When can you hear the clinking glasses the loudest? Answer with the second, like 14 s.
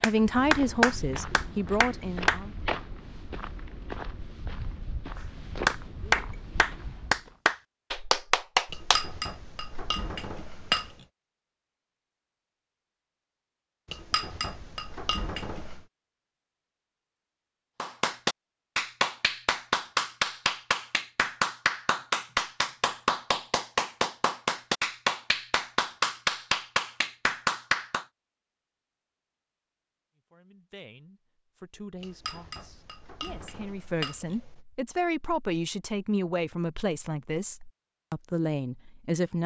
11 s.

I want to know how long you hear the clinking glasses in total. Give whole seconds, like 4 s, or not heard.
7 s.